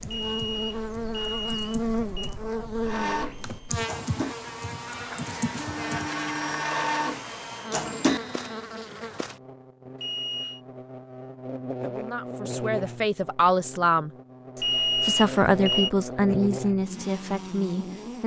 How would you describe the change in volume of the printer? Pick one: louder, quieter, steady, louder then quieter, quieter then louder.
louder.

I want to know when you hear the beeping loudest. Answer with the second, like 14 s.
15 s.